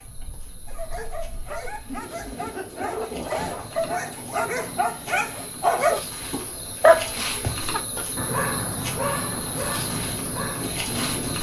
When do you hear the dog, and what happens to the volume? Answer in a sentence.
You can hear the dog from 0.7 to 10.7 s, getting louder then quieter.